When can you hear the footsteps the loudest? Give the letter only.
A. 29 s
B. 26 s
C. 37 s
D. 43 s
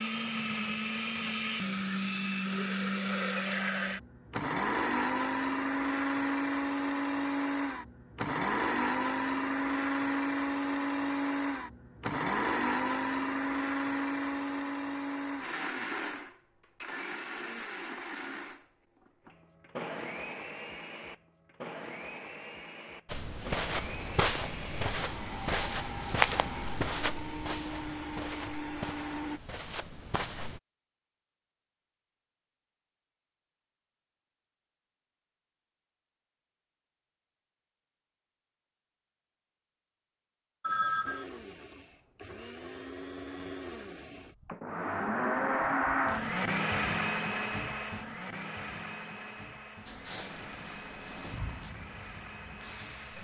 B.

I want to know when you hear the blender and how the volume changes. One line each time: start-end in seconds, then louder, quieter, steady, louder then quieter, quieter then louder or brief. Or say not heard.
0.0-29.4 quieter
41.0-53.1 louder then quieter.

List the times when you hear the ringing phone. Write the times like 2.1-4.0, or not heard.
40.6-41.2.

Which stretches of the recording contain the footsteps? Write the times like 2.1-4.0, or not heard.
23.1-30.6.